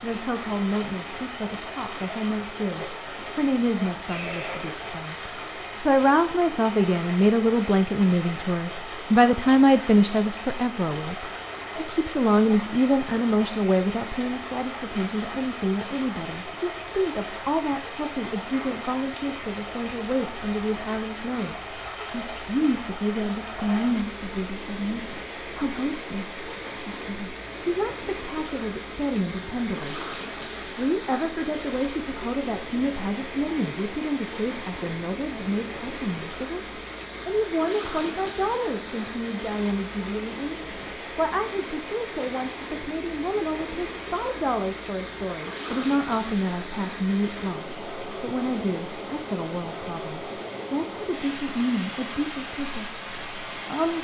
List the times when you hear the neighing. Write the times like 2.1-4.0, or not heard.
4.0-4.8.